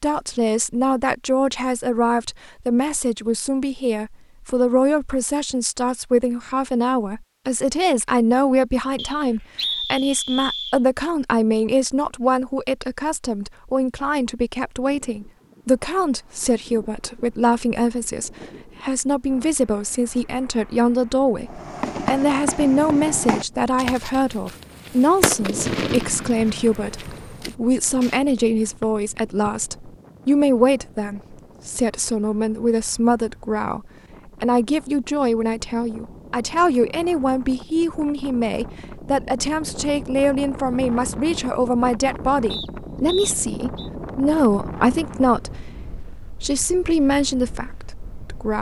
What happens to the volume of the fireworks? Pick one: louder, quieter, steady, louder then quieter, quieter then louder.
quieter.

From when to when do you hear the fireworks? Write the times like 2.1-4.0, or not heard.
21.4-28.1.